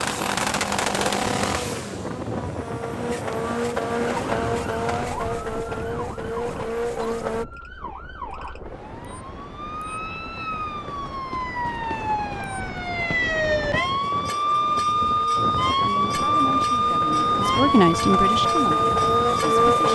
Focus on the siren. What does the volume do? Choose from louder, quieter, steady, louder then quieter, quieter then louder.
louder.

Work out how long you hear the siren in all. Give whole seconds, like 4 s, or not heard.
16 s.